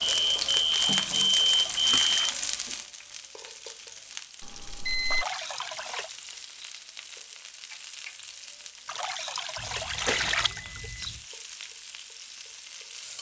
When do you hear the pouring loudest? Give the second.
10 s.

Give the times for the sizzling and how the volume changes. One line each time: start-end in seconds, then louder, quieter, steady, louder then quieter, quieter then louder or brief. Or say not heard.
0.0-13.1 quieter.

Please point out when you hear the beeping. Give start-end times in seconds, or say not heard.
0.0-2.3, 4.4-5.2, 9.6-11.2.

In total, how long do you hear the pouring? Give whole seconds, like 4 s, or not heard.
5 s.